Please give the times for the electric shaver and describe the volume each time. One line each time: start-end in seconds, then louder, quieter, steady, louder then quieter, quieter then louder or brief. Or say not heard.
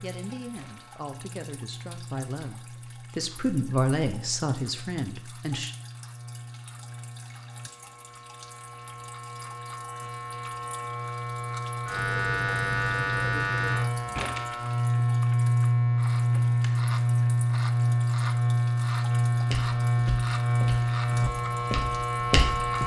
0.0-22.8 louder.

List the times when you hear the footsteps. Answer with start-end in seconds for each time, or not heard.
19.4-22.8.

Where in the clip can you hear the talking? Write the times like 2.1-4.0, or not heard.
0.0-5.8.